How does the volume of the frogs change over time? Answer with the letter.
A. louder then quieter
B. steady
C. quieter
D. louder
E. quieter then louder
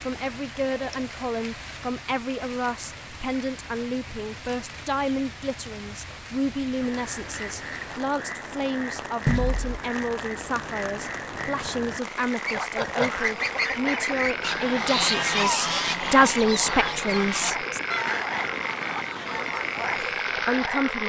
D.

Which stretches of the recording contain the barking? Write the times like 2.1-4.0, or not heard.
not heard.